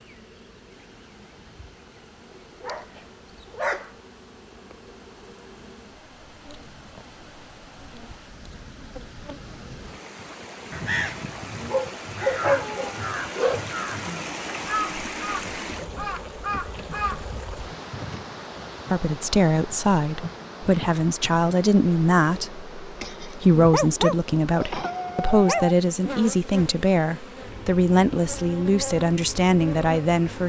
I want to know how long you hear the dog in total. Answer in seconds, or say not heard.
5 s.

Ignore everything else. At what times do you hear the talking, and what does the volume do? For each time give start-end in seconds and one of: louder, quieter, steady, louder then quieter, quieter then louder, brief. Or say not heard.
18.9-30.4 steady.